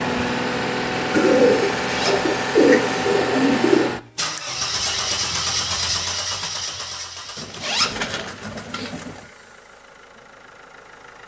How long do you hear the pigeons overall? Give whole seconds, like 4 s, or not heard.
5 s.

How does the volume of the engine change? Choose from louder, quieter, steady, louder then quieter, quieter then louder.
quieter.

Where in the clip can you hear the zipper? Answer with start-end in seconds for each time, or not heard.
1.9-2.3, 7.6-8.1.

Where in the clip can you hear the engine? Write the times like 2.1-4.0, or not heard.
0.0-11.2.